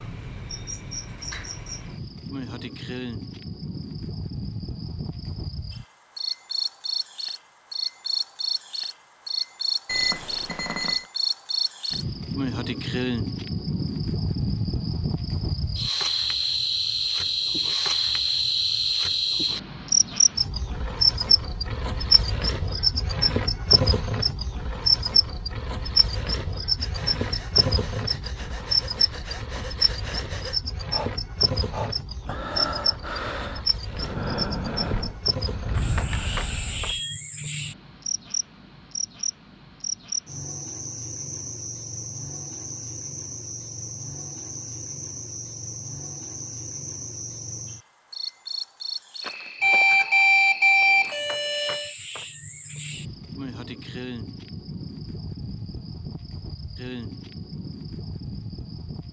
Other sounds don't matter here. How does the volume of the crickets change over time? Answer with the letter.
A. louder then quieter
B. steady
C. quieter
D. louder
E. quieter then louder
A.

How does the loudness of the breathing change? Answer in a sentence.
The loudness of the breathing goes up.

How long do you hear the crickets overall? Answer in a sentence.
The crickets can be heard for 59 seconds in total.